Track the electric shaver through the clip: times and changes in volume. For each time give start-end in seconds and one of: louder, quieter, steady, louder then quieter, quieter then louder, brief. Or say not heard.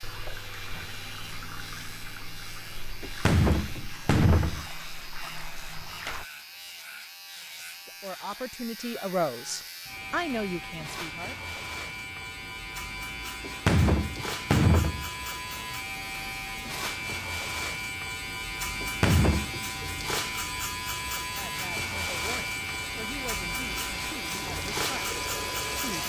0.0-26.0 louder.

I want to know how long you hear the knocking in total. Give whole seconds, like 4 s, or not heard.
4 s.